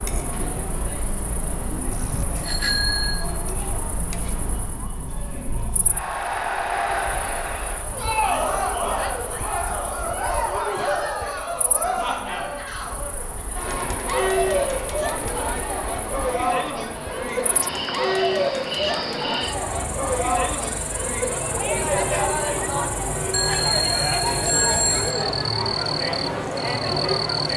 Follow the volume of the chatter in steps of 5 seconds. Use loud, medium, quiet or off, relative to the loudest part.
medium, loud, loud, loud, loud, loud.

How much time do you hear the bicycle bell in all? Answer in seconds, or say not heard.
3 s.